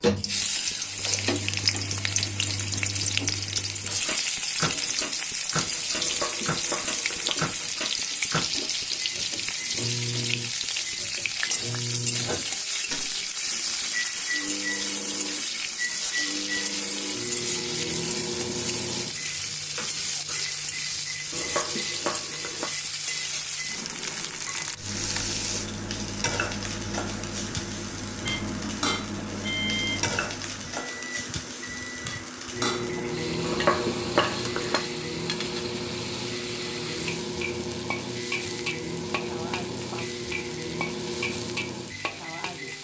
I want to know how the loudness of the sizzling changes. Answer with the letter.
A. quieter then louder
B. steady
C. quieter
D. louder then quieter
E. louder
C.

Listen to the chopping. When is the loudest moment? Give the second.
34 s.